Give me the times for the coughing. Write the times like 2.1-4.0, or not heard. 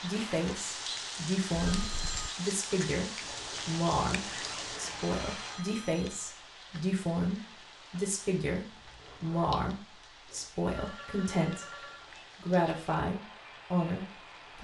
not heard.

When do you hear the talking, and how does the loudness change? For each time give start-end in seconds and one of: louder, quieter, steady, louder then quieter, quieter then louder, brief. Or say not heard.
0.0-14.5 steady.